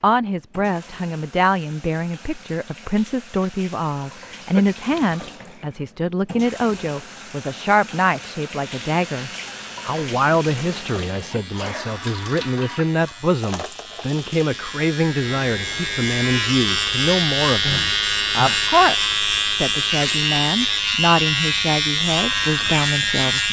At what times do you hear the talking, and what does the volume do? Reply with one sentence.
You can hear the talking from 0.0 to 23.4 s, at a steady volume.